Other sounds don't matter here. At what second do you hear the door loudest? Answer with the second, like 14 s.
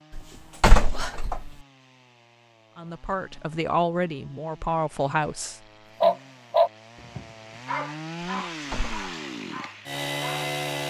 1 s.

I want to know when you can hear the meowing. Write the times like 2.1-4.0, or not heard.
not heard.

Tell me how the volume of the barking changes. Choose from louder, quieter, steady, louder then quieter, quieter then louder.
quieter.